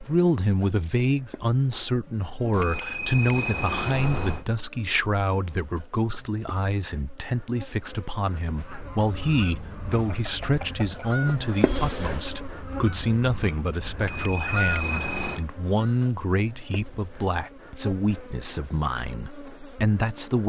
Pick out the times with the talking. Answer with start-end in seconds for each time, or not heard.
0.0-20.4.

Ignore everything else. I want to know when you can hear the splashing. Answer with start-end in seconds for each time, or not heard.
not heard.